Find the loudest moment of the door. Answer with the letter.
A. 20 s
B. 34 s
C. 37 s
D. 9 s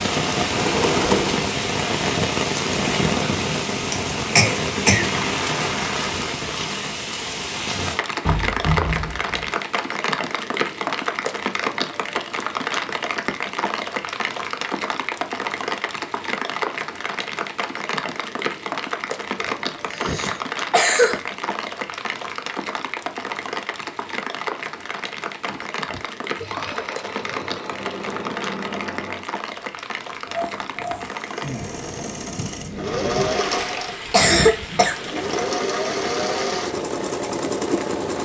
D.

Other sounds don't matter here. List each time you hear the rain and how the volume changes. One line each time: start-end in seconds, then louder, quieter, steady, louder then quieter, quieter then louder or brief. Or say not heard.
0.0-38.1 quieter.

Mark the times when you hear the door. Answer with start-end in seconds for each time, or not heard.
8.2-9.5, 19.4-20.2.